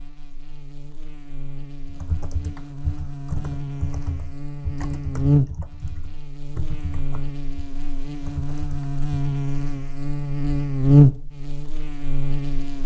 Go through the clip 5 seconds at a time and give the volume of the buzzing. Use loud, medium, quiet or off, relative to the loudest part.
quiet, medium, loud.